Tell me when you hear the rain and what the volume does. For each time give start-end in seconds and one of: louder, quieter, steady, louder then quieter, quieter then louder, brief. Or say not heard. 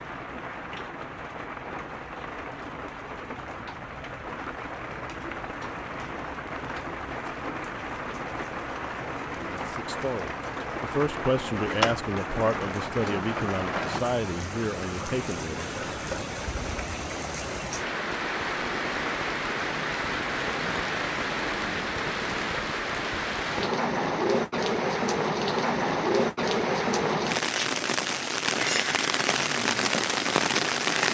0.0-31.0 louder.